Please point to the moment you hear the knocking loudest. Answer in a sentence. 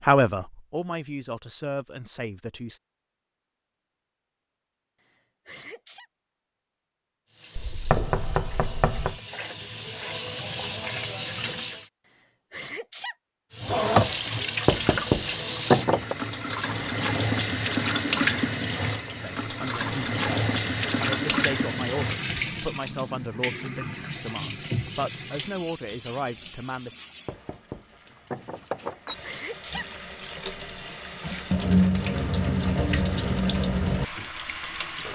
The loudest moment of the knocking is at 16 seconds.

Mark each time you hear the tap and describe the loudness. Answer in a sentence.
The tap can be heard from 7.3 to 11.8 s, getting louder; and from 13.5 to 35.1 s, getting quieter then louder.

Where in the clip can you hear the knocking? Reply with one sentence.
You can hear the knocking from 7.5 to 9.2 s, from 14.7 to 16.1 s and from 27.2 to 29.1 s.